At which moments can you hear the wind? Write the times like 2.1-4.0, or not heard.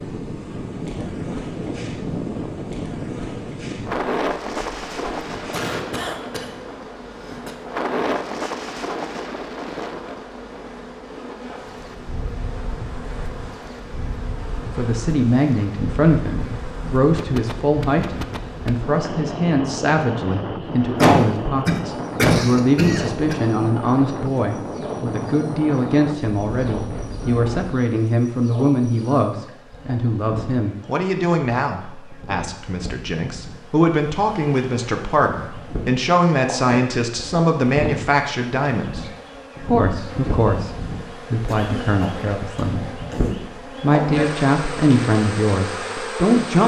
0.0-27.9.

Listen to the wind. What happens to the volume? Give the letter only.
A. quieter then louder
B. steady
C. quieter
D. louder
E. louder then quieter
A.